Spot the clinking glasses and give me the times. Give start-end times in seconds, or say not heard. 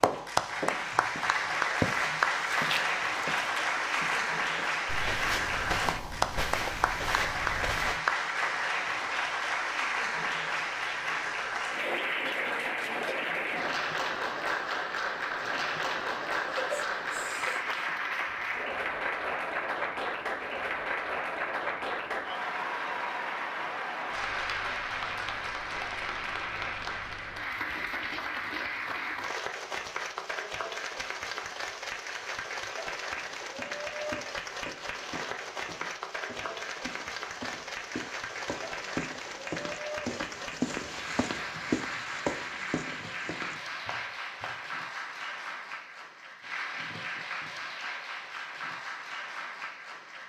not heard.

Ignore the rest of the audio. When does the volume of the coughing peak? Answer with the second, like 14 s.
17 s.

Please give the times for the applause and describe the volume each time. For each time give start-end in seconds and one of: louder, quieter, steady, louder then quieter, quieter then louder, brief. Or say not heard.
0.0-50.2 quieter.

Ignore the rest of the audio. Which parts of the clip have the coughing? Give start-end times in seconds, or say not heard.
16.4-17.9.